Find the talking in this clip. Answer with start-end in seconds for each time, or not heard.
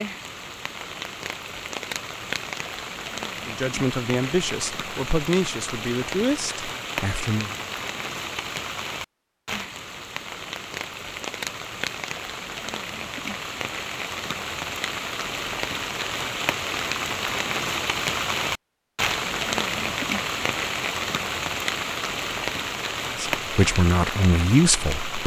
3.5-7.5, 23.1-25.2.